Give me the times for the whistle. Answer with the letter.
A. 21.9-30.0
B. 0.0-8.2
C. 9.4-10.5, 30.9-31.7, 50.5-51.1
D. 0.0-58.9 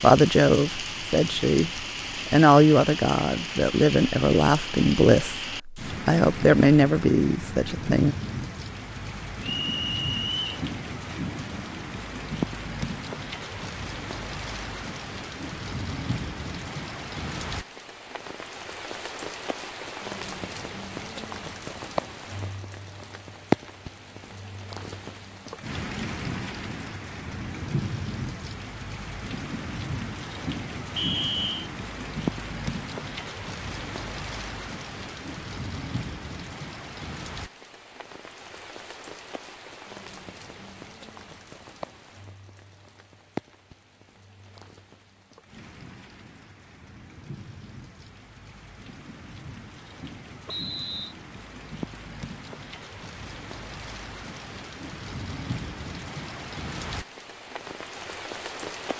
C.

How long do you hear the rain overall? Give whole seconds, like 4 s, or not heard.
59 s.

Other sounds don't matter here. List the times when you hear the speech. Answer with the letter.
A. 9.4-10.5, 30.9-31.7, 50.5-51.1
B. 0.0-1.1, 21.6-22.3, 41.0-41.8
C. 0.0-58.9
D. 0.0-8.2
D.